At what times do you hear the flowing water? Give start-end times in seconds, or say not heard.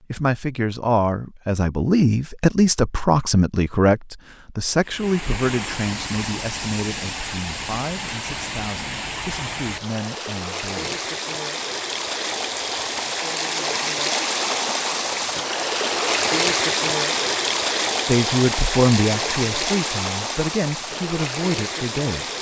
4.8-22.3.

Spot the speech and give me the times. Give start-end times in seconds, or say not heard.
0.1-11.1, 18.1-22.3.